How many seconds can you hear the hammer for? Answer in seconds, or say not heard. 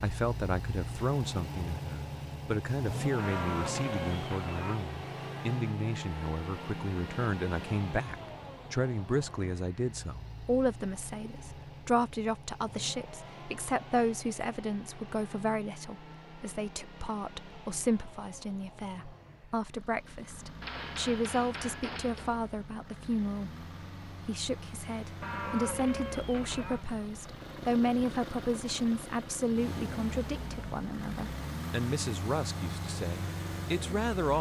2 s.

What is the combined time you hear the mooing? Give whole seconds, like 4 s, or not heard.
3 s.